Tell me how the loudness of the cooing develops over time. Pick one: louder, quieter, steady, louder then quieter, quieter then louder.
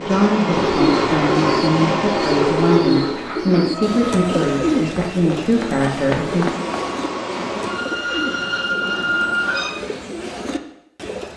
quieter.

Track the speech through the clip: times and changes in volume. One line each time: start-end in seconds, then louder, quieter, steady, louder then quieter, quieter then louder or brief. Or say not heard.
0.0-6.5 steady.